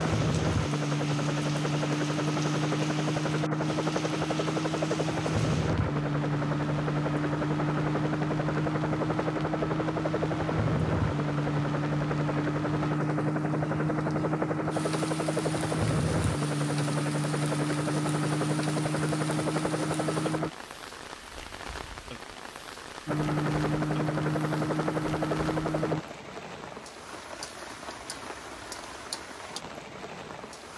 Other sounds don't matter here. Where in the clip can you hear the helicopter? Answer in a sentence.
The helicopter can be heard from 0.0 to 20.5 s and from 23.1 to 26.1 s.